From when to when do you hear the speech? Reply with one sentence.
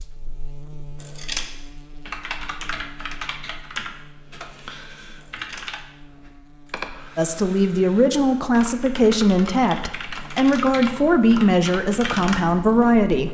The speech can be heard from 7.2 to 13.2 s.